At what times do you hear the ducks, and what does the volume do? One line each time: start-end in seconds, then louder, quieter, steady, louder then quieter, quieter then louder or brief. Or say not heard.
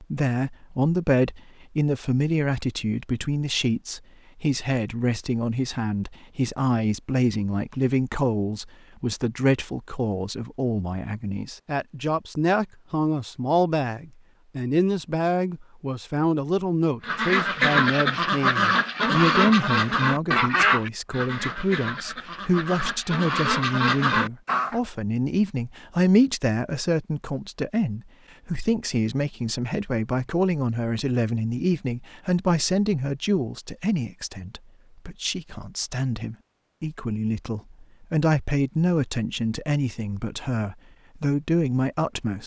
17.0-24.8 quieter then louder.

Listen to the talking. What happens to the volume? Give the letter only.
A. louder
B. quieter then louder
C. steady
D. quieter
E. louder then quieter
C.